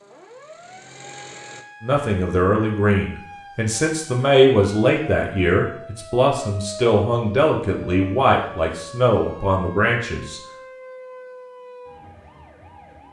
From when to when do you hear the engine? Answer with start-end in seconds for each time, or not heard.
0.0-1.6.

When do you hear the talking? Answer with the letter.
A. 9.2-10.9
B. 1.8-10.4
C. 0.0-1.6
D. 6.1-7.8
B.